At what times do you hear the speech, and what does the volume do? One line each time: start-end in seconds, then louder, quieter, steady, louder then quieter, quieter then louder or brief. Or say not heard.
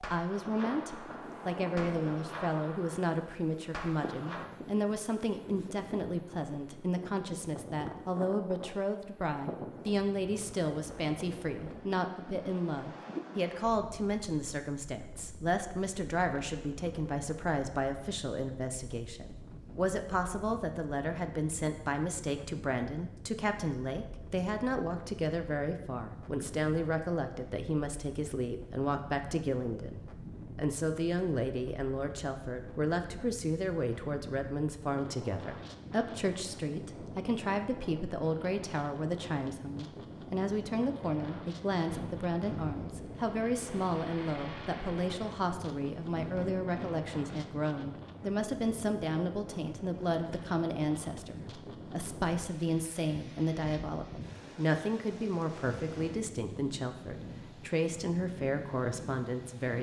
0.0-59.7 steady.